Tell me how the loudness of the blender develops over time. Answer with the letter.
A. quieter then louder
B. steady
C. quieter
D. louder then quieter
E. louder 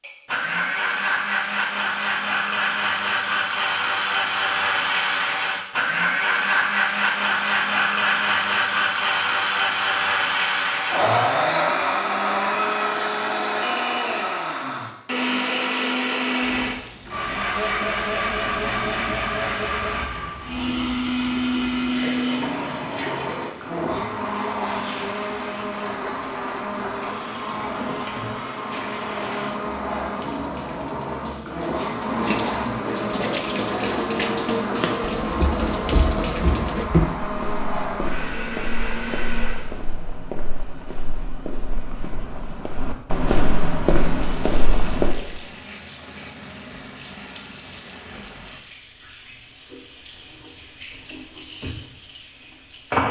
C.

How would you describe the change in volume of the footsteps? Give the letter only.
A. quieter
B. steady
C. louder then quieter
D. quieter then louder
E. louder
D.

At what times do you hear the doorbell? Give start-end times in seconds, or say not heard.
not heard.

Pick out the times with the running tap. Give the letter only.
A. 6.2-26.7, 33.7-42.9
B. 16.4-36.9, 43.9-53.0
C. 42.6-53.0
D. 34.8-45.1
B.